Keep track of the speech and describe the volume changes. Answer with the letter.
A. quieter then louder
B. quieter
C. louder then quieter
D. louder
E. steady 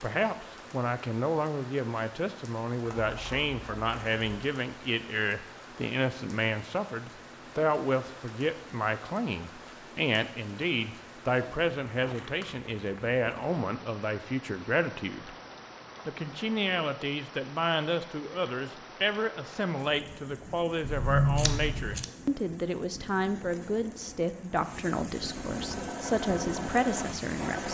E.